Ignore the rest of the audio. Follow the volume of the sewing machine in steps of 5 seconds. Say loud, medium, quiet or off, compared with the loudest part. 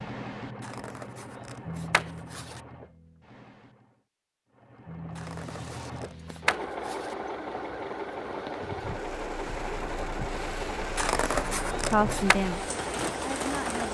medium, loud, loud.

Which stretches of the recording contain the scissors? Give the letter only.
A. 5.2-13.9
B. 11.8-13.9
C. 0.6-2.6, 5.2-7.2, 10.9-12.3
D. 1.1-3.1
C.